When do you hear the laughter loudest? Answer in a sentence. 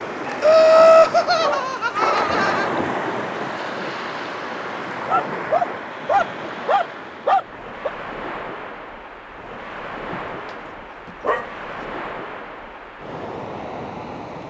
The loudest moment of the laughter is at 1 second.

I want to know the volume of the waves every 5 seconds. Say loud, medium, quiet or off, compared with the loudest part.
loud, medium, medium.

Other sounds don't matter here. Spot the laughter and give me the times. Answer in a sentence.
You can hear the laughter from 0.4 to 2.7 s.